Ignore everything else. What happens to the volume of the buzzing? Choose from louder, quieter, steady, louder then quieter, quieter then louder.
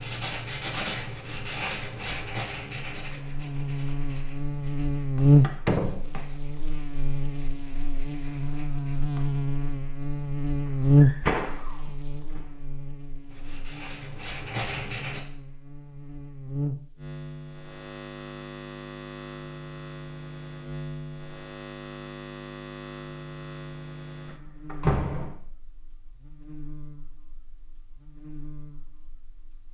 quieter.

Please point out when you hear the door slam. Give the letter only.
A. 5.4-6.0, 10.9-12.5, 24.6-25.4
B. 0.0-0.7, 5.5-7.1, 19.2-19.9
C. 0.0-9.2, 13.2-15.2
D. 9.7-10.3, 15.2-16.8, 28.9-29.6
A.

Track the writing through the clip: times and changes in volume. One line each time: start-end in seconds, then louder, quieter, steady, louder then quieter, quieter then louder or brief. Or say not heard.
0.0-9.2 quieter
13.2-15.2 brief.